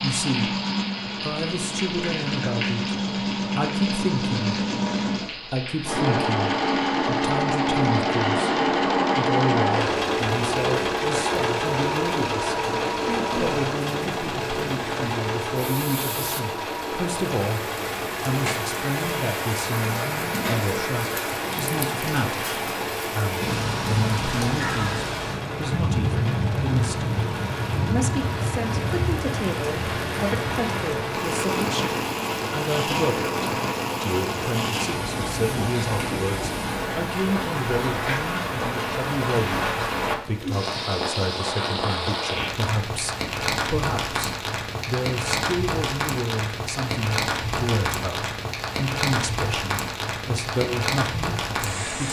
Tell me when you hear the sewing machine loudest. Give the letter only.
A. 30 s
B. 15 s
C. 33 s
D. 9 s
D.